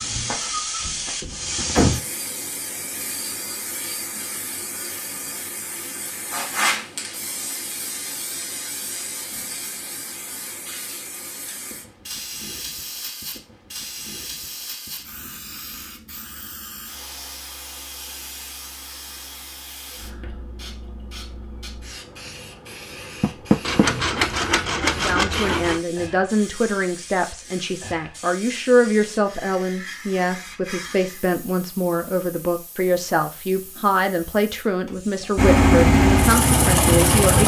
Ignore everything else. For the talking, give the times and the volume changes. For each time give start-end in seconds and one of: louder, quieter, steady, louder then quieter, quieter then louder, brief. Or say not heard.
24.9-37.4 steady.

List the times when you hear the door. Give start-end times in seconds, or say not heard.
0.0-2.0, 23.2-23.9.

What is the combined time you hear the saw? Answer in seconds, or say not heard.
2 s.